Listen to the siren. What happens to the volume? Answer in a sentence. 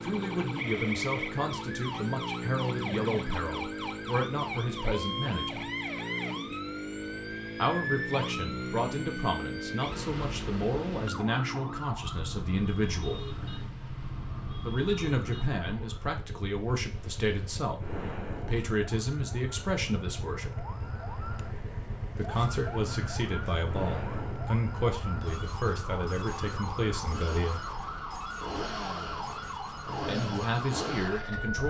The volume of the siren goes down, then up.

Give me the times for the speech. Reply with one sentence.
The speech can be heard from 0.0 to 5.7 s, from 7.5 to 13.2 s, from 14.6 to 20.6 s, from 22.1 to 27.6 s and from 30.1 to 31.6 s.